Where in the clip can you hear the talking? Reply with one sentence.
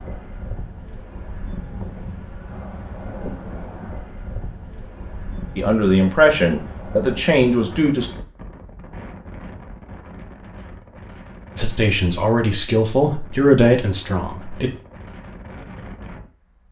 You can hear the talking from 5.5 to 8.1 s and from 11.6 to 14.7 s.